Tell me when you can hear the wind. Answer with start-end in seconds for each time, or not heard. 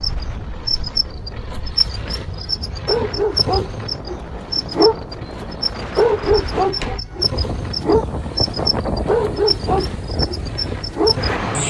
0.0-11.6.